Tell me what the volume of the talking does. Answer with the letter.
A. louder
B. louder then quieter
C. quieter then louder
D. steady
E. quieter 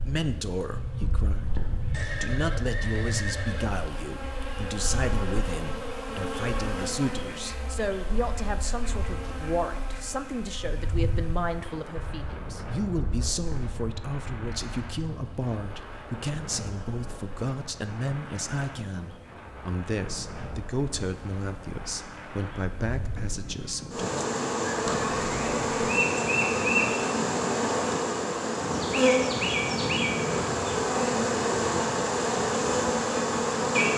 D.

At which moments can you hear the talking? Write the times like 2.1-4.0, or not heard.
0.1-24.0.